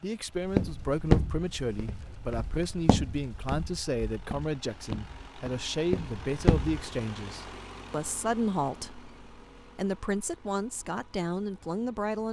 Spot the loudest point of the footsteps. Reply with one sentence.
The loudest moment of the footsteps is at 1 second.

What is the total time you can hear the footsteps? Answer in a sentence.
You can hear the footsteps for 6 seconds altogether.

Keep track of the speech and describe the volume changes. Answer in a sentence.
The loudness of the speech stays about the same.